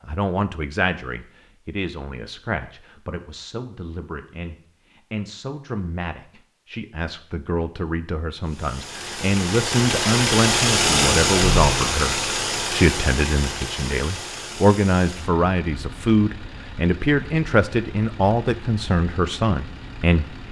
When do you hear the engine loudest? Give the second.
11 s.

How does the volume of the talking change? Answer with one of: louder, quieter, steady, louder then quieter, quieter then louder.
louder.